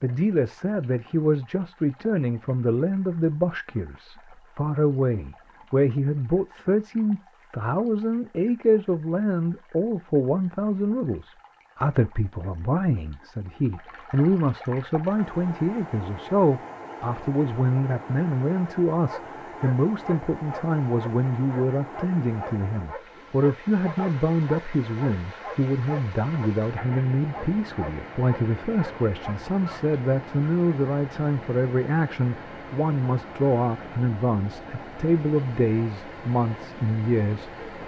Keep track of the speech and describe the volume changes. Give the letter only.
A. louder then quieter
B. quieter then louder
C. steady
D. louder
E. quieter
C.